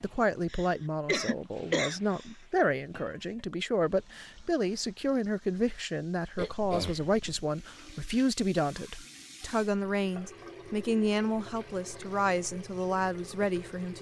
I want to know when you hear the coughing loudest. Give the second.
2 s.